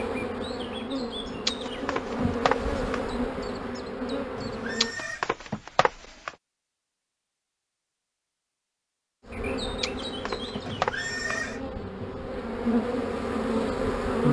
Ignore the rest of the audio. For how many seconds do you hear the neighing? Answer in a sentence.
You can hear the neighing for 2 seconds altogether.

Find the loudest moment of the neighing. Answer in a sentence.
The volume of the neighing peaks at 11 seconds.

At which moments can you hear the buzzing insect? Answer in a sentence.
The buzzing insect can be heard from 0.0 to 5.0 s and from 9.2 to 14.2 s.